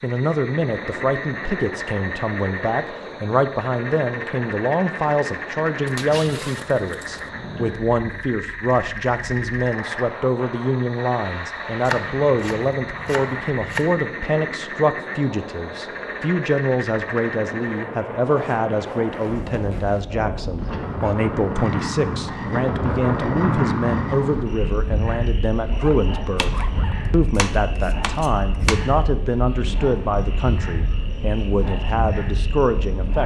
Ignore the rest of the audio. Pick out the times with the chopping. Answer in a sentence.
You can hear the chopping from 11.8 to 14.0 s and from 26.4 to 28.8 s.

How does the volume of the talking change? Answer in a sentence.
The volume of the talking stays about the same.